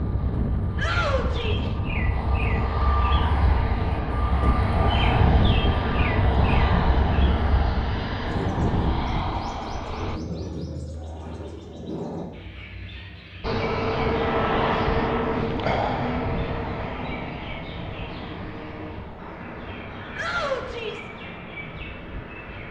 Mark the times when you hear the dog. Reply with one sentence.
You can't hear the dog here.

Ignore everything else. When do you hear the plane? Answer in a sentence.
The plane can be heard from 0.0 to 10.2 s and from 13.4 to 22.6 s.